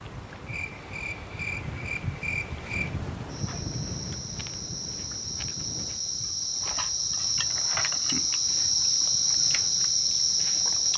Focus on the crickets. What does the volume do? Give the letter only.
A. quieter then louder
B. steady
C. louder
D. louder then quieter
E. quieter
C.